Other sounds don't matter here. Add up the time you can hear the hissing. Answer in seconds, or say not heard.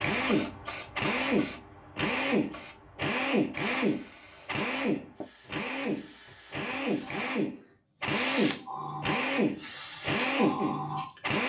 11 s.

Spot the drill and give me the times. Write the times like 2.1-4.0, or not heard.
0.0-11.4.